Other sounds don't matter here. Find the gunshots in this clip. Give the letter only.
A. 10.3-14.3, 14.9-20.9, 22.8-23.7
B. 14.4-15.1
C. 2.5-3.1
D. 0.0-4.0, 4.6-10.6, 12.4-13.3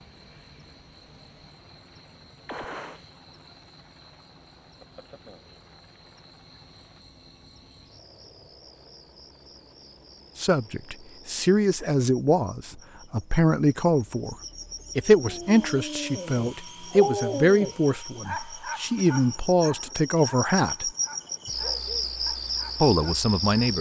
C.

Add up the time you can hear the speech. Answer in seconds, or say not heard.
11 s.